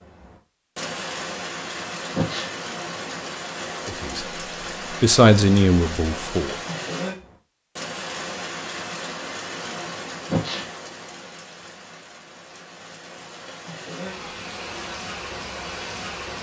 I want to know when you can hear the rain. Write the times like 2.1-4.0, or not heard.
0.0-16.3.